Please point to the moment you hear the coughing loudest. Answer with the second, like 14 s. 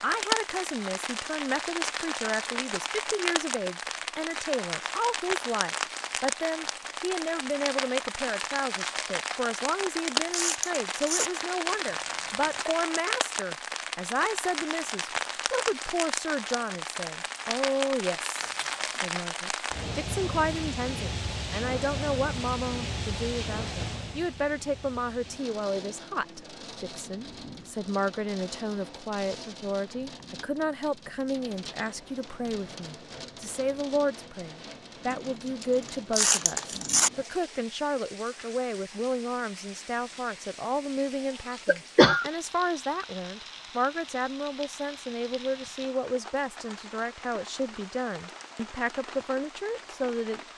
42 s.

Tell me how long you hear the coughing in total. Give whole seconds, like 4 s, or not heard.
2 s.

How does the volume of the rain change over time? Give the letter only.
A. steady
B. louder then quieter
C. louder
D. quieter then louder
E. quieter
E.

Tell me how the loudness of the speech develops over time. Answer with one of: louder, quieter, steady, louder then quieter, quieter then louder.
steady.